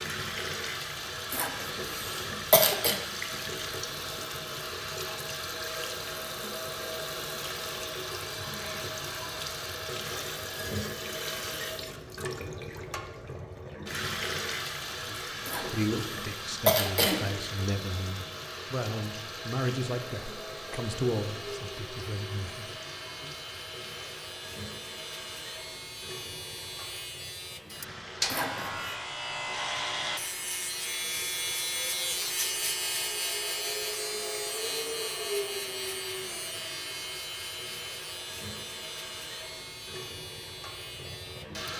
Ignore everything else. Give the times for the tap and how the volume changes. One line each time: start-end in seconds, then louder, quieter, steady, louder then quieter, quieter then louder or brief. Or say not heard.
0.0-41.7 quieter.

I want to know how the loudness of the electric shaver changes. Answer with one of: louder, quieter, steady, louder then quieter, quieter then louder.
louder then quieter.